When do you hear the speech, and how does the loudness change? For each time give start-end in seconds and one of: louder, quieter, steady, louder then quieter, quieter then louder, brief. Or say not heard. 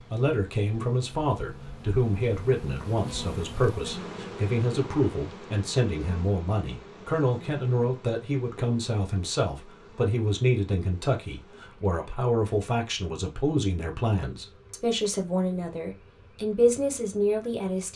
0.0-17.9 steady.